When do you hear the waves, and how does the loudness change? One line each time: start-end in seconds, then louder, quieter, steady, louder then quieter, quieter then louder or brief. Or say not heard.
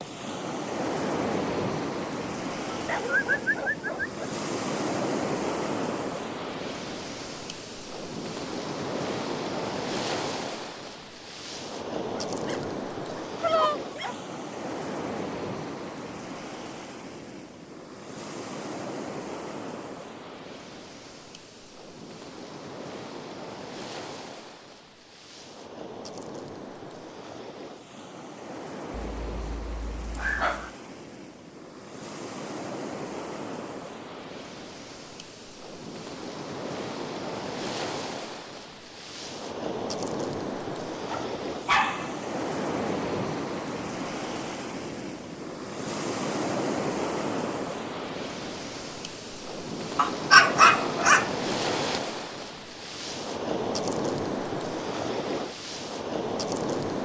0.0-57.0 quieter then louder.